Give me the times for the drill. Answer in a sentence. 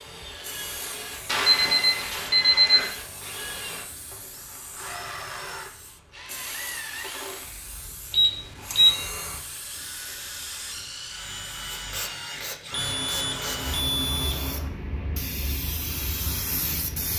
The drill can be heard from 0.0 to 13.8 s.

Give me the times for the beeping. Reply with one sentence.
The beeping can be heard from 1.2 to 2.9 s, from 8.1 to 9.1 s and from 12.7 to 14.7 s.